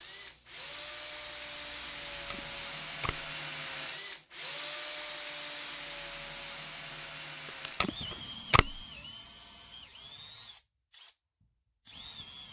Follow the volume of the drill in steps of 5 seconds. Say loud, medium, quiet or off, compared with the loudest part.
loud, loud, medium.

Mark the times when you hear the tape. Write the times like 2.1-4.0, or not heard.
2.1-3.2, 7.7-8.8.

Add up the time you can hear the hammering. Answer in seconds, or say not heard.
not heard.